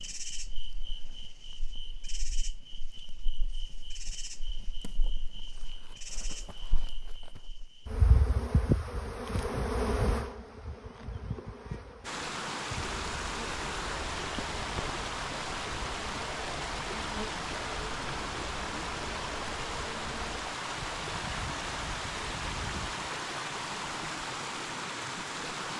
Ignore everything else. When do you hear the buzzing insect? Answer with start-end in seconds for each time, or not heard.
0.0-20.6.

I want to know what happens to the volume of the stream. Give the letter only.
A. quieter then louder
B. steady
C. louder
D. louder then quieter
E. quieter
B.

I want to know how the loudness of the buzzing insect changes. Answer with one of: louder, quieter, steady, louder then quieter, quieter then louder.
louder then quieter.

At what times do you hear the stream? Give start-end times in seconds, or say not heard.
12.0-25.7.